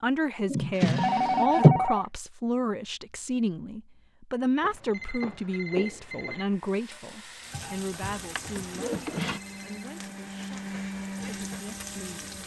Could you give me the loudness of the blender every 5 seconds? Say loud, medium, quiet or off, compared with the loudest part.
off, medium, loud.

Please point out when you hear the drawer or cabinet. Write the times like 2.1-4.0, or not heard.
0.5-1.8, 8.2-9.4.